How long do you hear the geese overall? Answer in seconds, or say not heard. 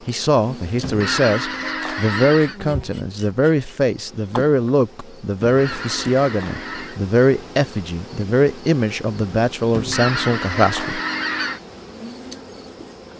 5 s.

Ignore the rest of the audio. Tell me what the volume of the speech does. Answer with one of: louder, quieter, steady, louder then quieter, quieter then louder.
steady.